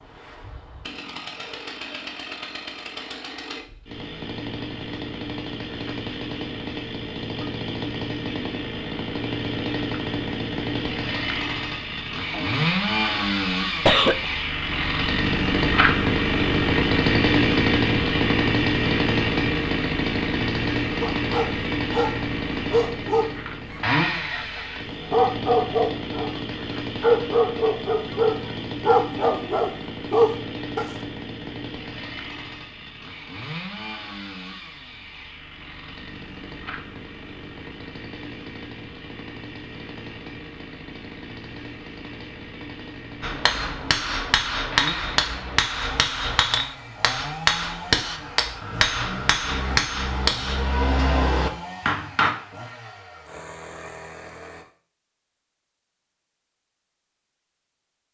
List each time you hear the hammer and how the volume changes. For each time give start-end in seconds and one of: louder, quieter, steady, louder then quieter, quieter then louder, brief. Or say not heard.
43.2-52.4 steady.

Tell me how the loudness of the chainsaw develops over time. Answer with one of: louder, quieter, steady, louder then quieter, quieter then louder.
louder then quieter.